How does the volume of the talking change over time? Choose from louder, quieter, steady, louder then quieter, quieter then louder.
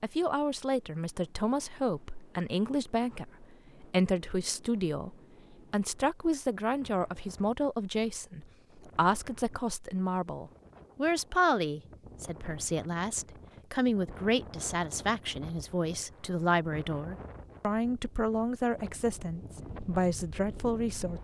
steady.